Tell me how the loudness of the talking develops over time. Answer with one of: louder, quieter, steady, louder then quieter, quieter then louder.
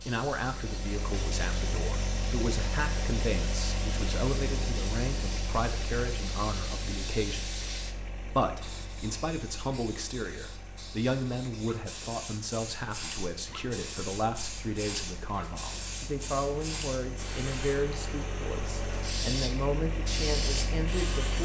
steady.